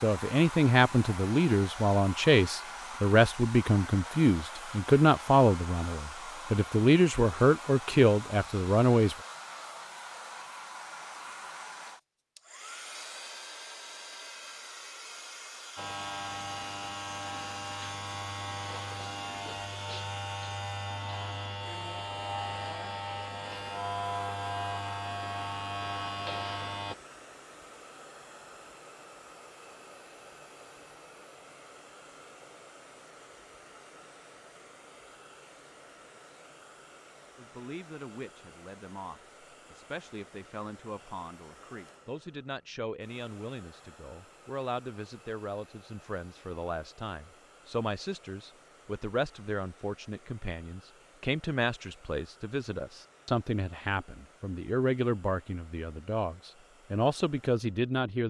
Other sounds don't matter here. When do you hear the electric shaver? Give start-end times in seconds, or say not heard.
15.8-26.9.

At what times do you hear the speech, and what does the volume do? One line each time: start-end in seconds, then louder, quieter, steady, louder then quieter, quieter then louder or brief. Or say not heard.
0.0-9.2 steady
37.4-58.2 louder.